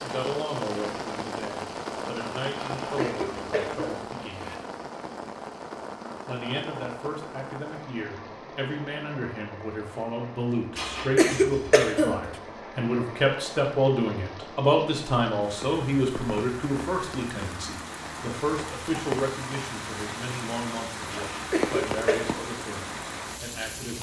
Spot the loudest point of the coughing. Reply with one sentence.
The loudest moment of the coughing is at 11 seconds.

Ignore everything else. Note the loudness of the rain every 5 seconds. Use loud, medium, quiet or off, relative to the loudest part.
loud, medium, medium, loud, loud.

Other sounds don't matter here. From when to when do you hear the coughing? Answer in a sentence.
You can hear the coughing from 2.8 to 4.5 s, from 10.8 to 12.3 s and from 21.1 to 22.2 s.